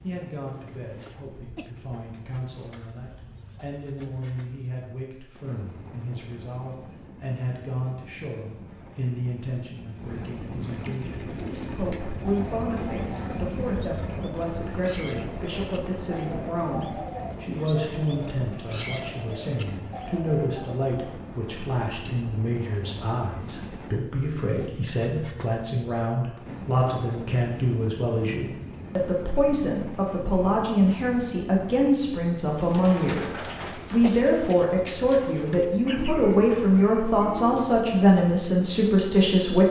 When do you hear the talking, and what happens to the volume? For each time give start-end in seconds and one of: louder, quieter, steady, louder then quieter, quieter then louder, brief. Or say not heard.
0.0-39.6 louder.